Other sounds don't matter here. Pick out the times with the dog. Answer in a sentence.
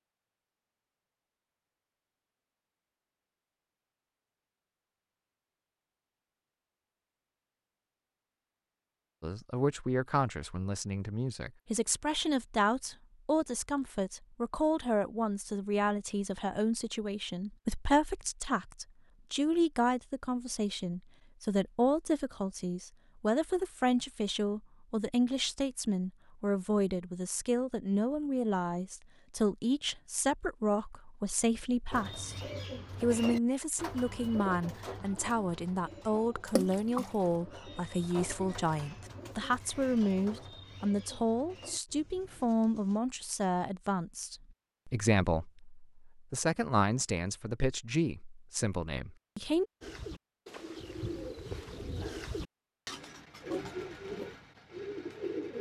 The dog can't be heard in this clip.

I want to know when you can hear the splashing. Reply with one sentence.
You can hear the splashing from 36.5 to 37.1 s.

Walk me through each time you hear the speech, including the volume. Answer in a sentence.
You can hear the speech from 9.2 to 32.4 s, at a steady volume; and from 33.0 to 49.6 s, at a steady volume.